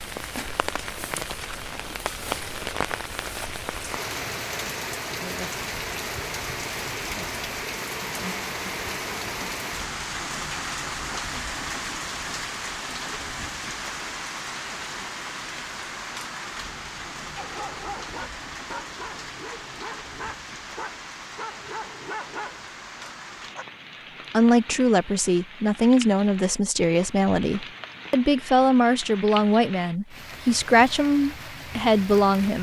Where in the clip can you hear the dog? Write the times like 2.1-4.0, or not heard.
17.4-23.6.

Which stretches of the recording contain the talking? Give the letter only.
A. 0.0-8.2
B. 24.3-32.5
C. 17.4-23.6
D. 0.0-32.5
B.